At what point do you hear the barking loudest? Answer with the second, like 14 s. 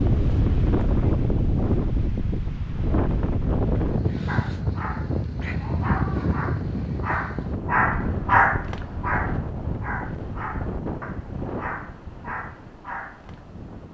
8 s.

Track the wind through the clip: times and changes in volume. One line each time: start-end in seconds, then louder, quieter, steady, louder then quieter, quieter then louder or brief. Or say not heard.
0.0-13.8 quieter.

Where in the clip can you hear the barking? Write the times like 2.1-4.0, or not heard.
4.2-13.4.